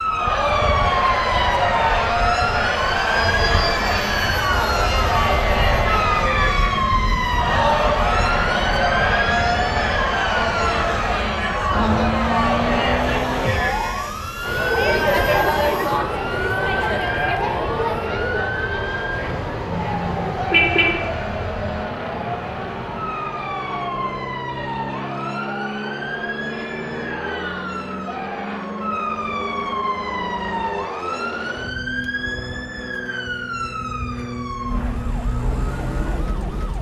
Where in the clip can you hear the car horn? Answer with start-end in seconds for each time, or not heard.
19.8-20.9.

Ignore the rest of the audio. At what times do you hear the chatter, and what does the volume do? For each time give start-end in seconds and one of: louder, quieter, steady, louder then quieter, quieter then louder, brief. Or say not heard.
0.0-28.6 quieter.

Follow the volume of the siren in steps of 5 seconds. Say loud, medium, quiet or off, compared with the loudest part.
loud, loud, loud, medium, medium, medium, medium, medium.